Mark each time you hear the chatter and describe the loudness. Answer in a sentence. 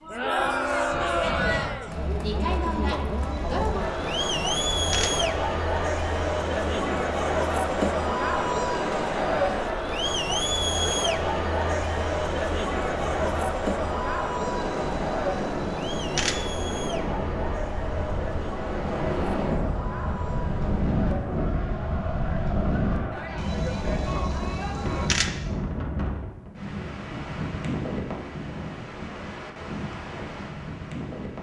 The chatter can be heard from 0.0 to 25.1 s, getting quieter.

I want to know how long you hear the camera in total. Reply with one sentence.
The camera can be heard for 6 seconds in total.